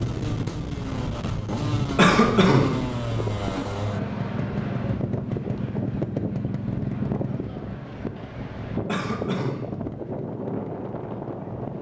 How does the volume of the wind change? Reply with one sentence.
The loudness of the wind stays about the same.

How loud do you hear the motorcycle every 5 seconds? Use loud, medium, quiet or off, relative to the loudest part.
loud, loud, medium.